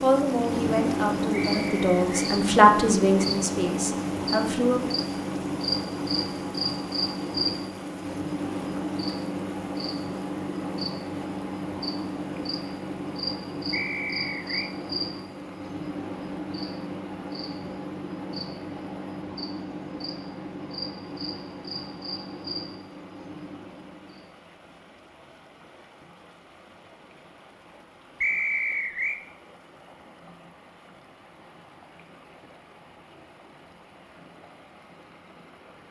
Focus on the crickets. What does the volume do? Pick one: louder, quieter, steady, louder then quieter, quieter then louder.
quieter.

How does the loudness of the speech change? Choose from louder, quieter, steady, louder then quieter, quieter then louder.
louder then quieter.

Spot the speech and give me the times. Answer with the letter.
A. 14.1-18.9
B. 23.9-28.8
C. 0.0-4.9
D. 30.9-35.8
C.